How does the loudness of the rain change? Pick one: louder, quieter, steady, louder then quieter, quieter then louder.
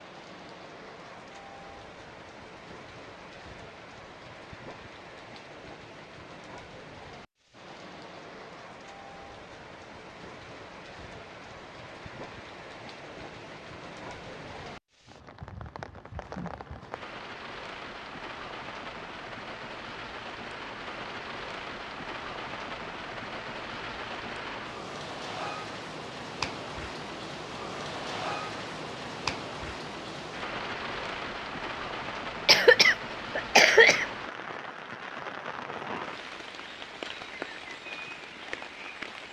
louder.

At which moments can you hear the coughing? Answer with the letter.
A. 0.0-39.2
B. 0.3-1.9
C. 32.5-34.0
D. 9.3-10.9
C.